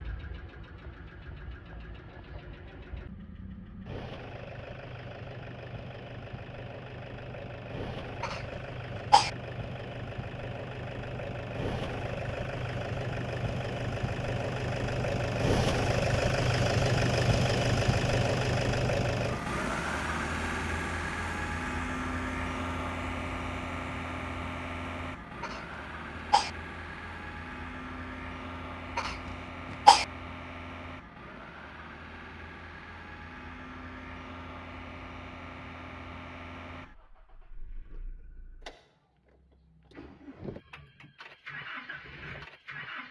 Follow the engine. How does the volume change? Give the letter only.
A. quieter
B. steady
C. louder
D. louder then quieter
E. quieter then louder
D.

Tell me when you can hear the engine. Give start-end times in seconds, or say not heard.
0.0-43.0.